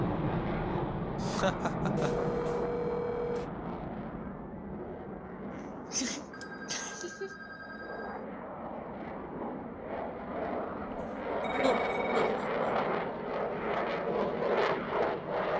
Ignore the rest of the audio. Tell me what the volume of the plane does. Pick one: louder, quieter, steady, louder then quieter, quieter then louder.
quieter then louder.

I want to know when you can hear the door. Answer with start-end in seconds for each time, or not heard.
not heard.